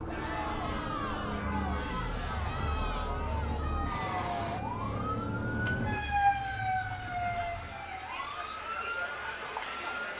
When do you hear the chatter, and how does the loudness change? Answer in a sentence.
The chatter can be heard from 0.1 to 10.1 s, getting quieter then louder.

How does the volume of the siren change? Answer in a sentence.
The volume of the siren goes up, then down.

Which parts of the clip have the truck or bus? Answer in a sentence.
The truck or bus can be heard from 0.0 to 4.6 s.